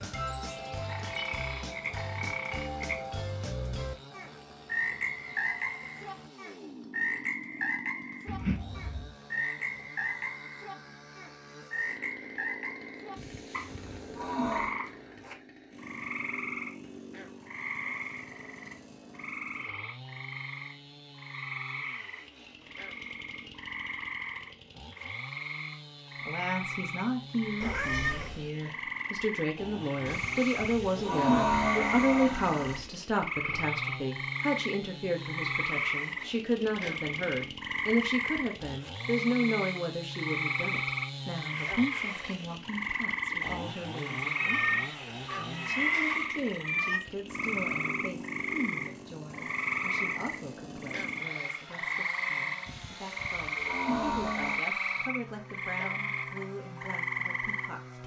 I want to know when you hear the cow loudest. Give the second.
31 s.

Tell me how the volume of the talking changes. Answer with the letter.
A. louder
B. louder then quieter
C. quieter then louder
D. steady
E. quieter
E.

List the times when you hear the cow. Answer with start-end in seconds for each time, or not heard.
13.2-14.8, 30.1-32.9, 52.6-54.6.